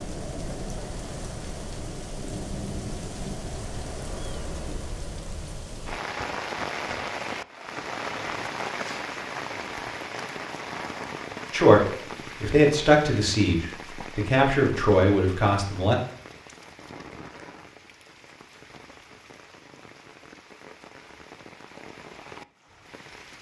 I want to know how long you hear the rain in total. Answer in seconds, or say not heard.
23 s.